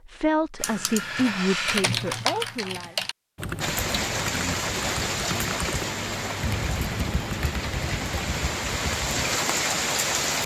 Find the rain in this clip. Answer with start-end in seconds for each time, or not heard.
3.6-10.4.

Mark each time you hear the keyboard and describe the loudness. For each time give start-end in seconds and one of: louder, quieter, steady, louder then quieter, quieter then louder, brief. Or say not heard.
0.6-9.4 quieter.